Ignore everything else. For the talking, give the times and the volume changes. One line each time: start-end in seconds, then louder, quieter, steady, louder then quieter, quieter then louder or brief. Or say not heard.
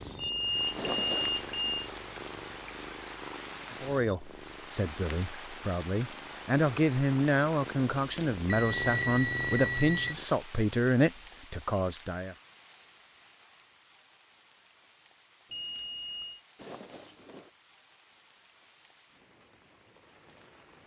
3.8-12.3 louder.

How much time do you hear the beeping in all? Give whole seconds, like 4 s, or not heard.
4 s.